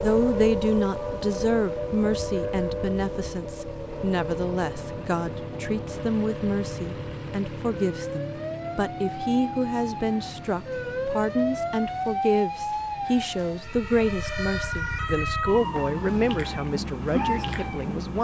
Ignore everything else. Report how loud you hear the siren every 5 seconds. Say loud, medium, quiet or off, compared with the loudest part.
loud, medium, loud, loud.